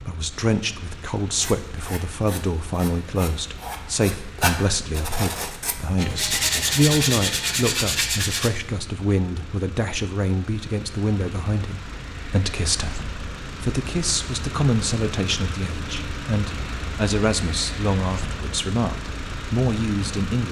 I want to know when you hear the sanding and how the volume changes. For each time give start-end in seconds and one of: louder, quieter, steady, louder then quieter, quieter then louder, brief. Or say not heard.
1.4-8.5 louder.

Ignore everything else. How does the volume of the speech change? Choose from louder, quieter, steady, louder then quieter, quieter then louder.
steady.